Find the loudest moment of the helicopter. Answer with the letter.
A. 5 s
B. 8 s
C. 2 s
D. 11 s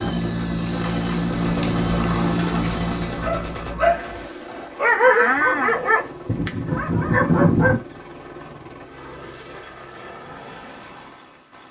C.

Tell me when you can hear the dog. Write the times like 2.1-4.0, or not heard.
3.1-7.8.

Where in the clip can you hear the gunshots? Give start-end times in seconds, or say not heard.
0.7-3.8.